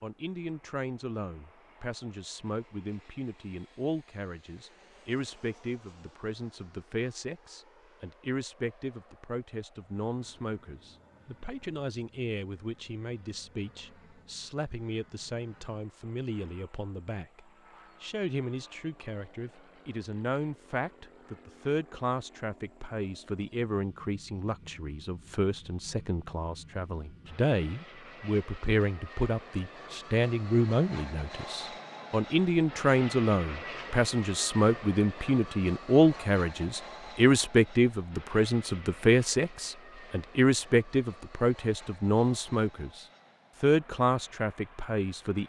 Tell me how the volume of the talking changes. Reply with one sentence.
The volume of the talking goes up.